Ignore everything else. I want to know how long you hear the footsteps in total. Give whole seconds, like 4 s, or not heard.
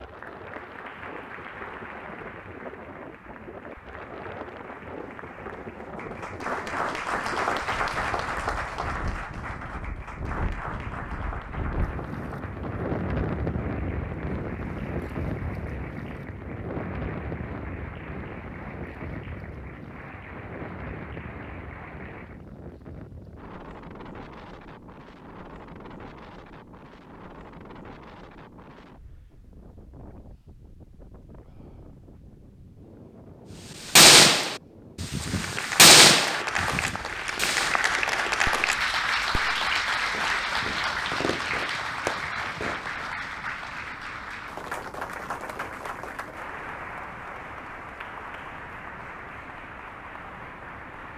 not heard.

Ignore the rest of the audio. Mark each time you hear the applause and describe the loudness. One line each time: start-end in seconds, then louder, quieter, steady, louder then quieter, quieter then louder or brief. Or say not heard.
0.0-22.4 louder then quieter
35.1-51.1 quieter.